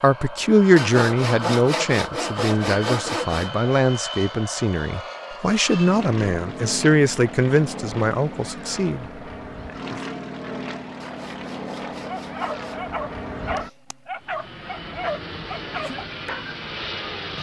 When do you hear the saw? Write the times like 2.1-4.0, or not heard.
0.8-3.5, 11.0-12.8.